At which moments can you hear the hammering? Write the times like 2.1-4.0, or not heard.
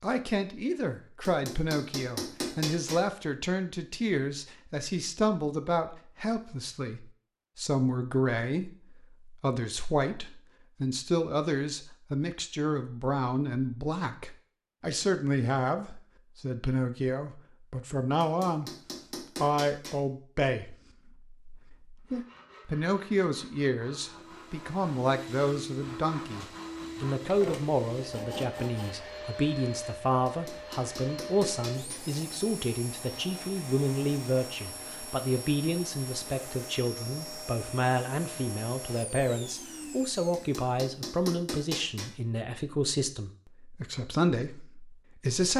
1.2-3.0, 18.2-19.9, 30.2-32.0, 40.3-42.1.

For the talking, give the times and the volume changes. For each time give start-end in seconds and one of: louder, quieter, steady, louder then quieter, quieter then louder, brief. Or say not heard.
0.0-18.7 steady
19.4-45.5 steady.